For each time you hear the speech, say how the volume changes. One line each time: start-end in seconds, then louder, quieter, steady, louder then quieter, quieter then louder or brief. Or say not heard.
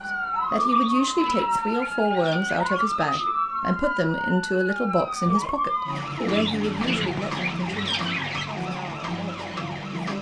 0.1-10.1 quieter.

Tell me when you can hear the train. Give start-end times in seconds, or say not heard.
not heard.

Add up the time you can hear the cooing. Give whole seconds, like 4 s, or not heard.
5 s.